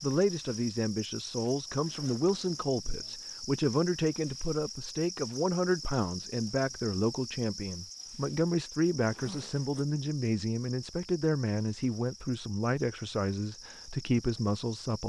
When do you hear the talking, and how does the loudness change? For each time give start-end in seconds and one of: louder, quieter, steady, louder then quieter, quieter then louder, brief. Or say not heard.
0.0-15.0 steady.